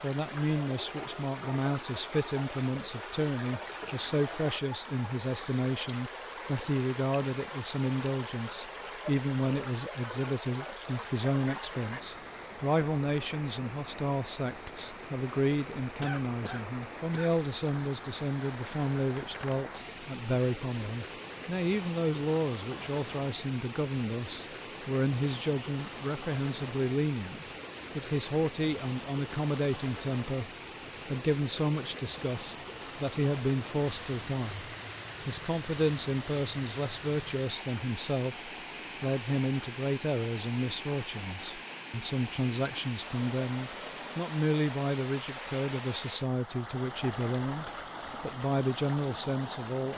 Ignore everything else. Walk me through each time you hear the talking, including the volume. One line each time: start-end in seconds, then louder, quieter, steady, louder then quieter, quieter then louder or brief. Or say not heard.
0.0-49.9 steady.